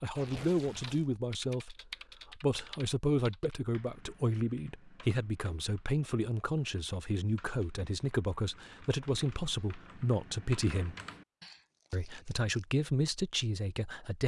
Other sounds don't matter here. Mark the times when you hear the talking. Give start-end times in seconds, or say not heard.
0.0-1.8, 2.4-10.9, 11.9-14.2.